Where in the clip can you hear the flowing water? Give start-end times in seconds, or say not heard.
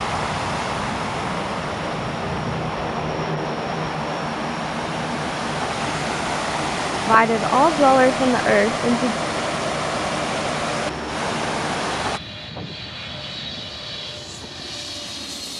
0.0-12.2.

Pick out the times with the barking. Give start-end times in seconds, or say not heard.
not heard.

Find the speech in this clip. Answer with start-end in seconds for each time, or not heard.
7.0-9.2.